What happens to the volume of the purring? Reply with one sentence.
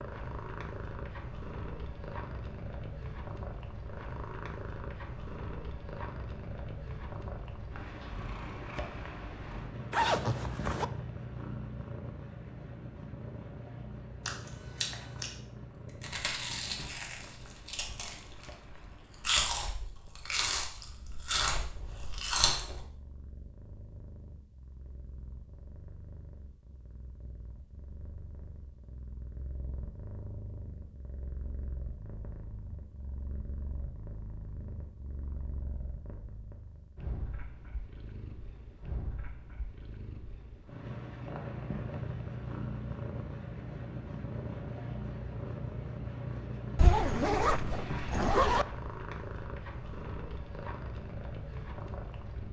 The loudness of the purring goes down, then up.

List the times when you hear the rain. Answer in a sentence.
You can't hear the rain here.